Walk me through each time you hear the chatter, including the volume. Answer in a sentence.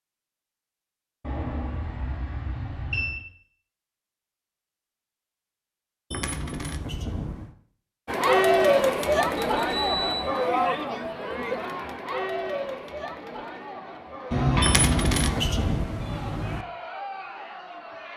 You can hear the chatter from 8.1 to 18.1 s, getting quieter.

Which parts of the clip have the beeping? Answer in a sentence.
You can hear the beeping from 1.2 to 3.2 s, from 9.6 to 10.2 s and from 14.3 to 15.5 s.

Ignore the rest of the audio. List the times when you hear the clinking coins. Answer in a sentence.
The clinking coins can be heard from 6.1 to 7.5 s and from 14.6 to 16.6 s.